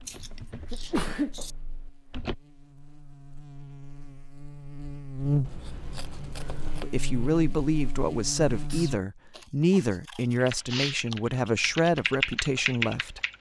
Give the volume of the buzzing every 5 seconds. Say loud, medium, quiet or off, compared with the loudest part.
quiet, loud, off.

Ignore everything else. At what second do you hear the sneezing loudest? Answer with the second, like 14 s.
1 s.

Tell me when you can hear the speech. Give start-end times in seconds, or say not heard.
6.8-13.2.